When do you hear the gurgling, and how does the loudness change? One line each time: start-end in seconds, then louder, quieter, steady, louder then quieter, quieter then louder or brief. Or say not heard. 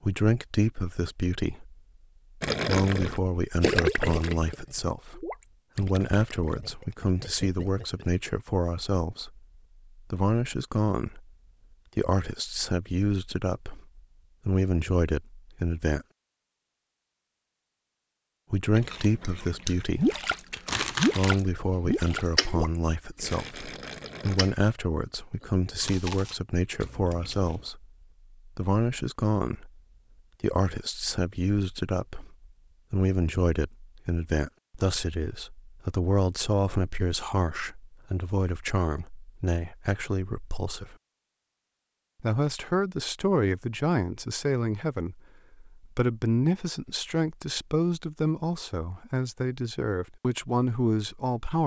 2.4-8.1 quieter
19.9-24.4 quieter.